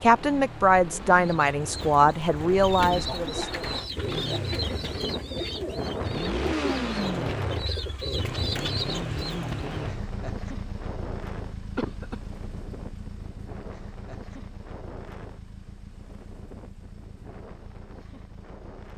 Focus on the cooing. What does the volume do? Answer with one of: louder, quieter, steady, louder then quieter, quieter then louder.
steady.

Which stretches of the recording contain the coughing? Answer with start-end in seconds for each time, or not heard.
11.8-12.2.